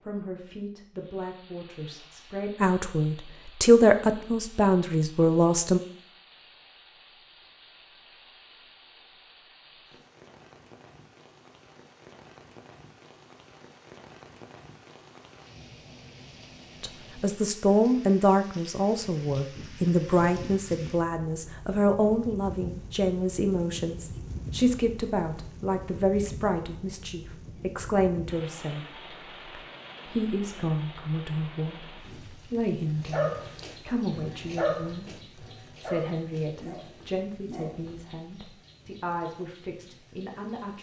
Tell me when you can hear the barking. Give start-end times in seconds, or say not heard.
33.0-38.0.